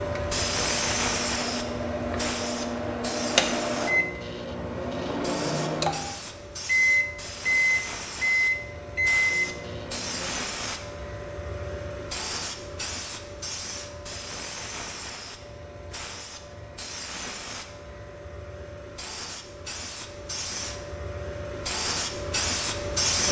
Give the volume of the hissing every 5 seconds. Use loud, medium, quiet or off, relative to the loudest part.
loud, medium, medium, medium, loud.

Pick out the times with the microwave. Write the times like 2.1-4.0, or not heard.
0.0-10.4.